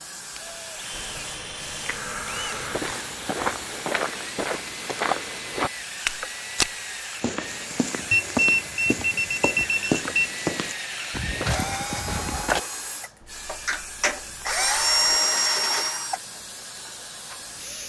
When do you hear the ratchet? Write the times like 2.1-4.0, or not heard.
not heard.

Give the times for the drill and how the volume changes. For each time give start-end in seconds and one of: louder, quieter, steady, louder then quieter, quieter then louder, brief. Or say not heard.
0.0-17.8 louder.